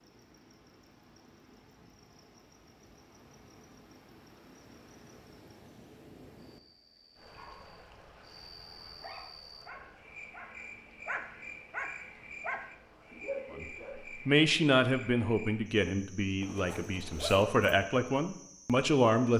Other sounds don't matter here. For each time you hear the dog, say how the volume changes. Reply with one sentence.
You can hear the dog from 7.3 to 14.1 s, getting louder.